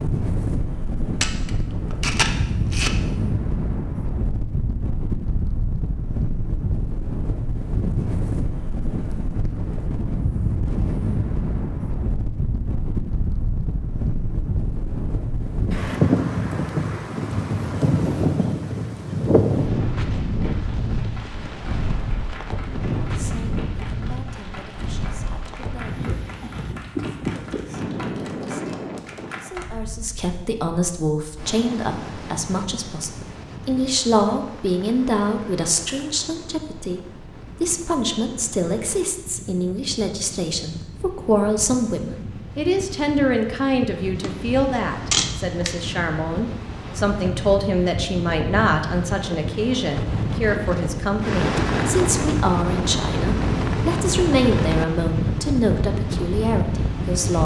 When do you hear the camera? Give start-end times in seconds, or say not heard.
1.2-2.9, 44.2-45.8.